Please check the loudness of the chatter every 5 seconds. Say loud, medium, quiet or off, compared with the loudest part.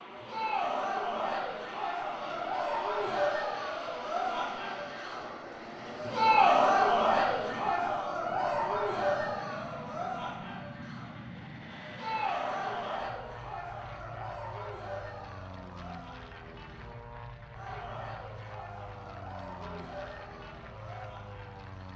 medium, loud, medium, quiet, quiet.